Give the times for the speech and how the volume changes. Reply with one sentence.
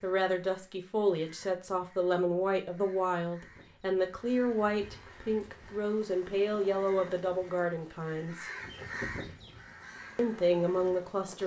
The speech can be heard from 0.0 to 8.5 s, at a steady volume; and briefly from 10.2 to 11.4 s.